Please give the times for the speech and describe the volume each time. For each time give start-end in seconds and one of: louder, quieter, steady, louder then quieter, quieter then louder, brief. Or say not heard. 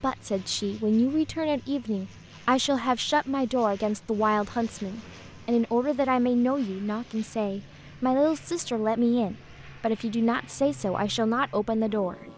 0.0-12.2 steady.